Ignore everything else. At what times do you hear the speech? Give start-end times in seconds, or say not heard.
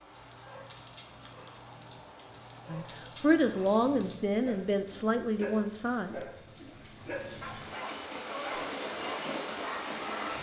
2.6-6.3.